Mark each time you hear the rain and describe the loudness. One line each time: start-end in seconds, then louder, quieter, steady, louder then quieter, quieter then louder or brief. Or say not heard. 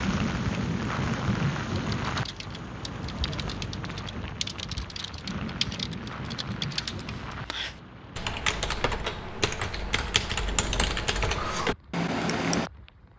0.0-13.1 quieter.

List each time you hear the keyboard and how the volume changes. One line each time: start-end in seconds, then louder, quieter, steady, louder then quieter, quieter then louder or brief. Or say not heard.
1.9-12.7 louder.